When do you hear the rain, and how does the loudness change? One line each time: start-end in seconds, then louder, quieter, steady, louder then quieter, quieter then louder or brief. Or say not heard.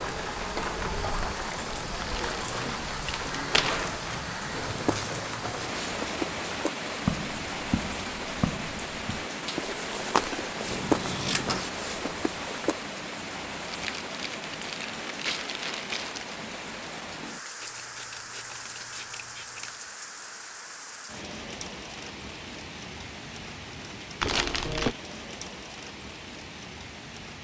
0.0-27.3 quieter.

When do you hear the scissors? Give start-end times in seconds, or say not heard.
10.7-11.7, 17.6-19.8.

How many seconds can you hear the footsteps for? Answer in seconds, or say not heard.
8 s.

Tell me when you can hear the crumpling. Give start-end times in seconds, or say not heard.
2.0-4.0, 13.7-16.4, 24.2-24.9.